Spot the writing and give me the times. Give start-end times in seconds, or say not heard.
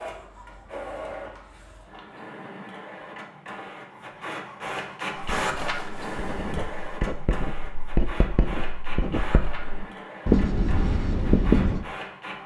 5.2-11.8.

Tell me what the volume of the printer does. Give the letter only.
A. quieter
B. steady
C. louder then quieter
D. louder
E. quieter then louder
C.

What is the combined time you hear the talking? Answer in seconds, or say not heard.
not heard.